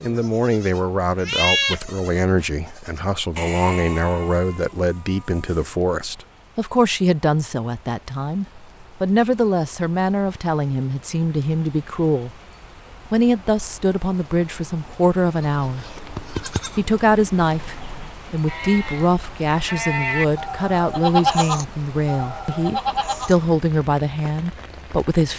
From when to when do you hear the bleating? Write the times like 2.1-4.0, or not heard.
0.0-5.7, 15.6-23.4.